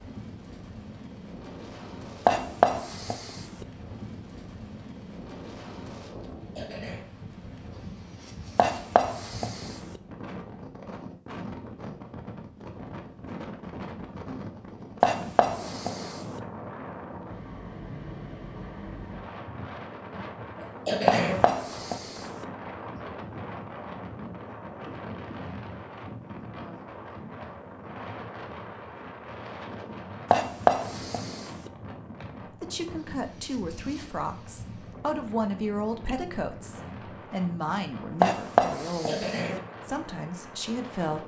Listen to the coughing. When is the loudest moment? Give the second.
21 s.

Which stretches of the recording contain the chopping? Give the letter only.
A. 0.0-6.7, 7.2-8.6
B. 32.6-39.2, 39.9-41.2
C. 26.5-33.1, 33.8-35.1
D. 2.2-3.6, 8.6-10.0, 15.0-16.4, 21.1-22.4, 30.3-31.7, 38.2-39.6
D.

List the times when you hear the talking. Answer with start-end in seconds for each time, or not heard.
32.6-39.2, 39.9-41.2.